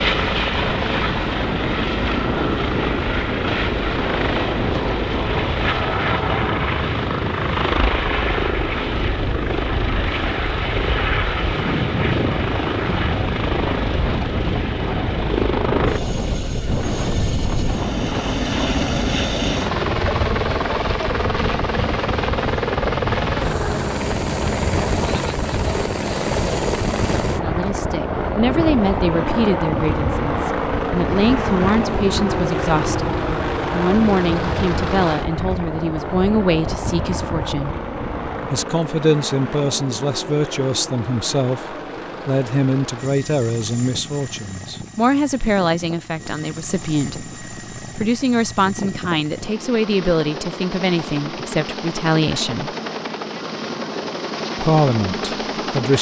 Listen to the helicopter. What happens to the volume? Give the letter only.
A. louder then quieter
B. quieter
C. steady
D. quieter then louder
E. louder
B.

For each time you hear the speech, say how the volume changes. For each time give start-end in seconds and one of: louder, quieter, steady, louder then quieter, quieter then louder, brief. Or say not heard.
27.4-37.8 steady
38.5-52.8 steady
54.5-55.9 brief.